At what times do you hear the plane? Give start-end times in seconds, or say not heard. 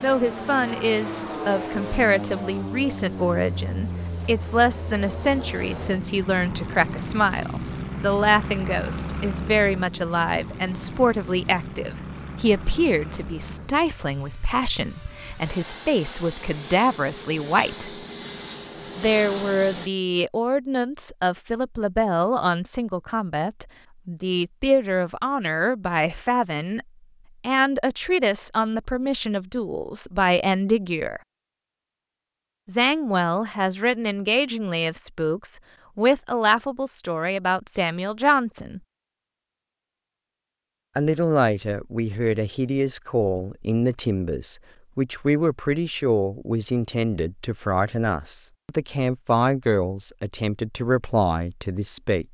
0.0-19.9.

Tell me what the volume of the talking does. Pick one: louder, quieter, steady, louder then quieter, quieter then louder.
steady.